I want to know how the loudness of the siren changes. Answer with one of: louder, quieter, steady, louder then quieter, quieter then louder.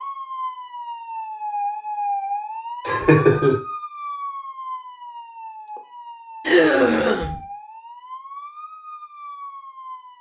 quieter.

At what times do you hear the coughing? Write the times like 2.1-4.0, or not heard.
2.9-3.6, 6.5-7.3.